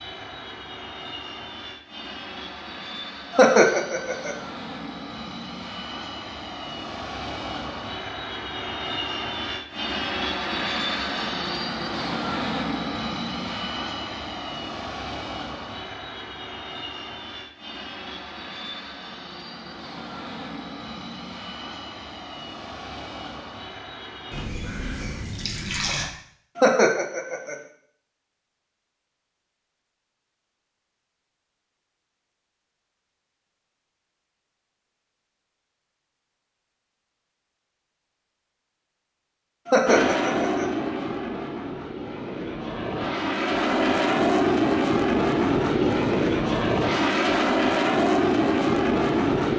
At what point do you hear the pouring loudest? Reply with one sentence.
The loudest moment of the pouring is at 26 seconds.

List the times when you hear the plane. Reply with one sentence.
You can hear the plane from 0.0 to 24.4 s and from 39.9 to 49.5 s.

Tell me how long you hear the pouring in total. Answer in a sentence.
You can hear the pouring for 2 seconds altogether.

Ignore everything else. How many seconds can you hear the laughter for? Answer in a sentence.
The laughter can be heard for 3 seconds in total.